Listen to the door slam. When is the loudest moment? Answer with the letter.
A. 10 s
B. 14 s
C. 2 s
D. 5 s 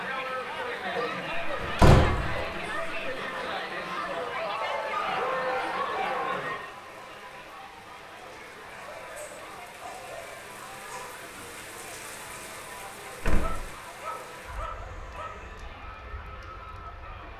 C.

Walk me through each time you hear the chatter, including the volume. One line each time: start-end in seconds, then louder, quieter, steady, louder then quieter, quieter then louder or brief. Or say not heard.
0.0-17.3 quieter.